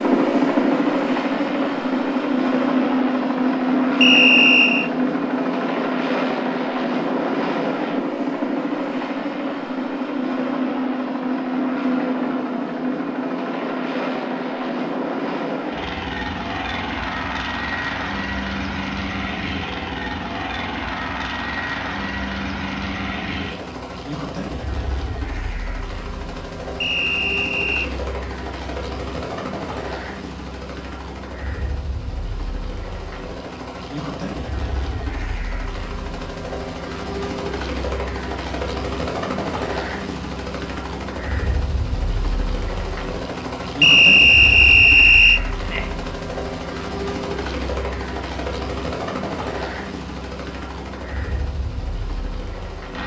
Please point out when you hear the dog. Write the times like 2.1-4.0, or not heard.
not heard.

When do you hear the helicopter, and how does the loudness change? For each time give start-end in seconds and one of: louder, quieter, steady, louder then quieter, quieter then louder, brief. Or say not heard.
0.0-53.0 quieter.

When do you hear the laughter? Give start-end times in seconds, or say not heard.
45.6-46.1.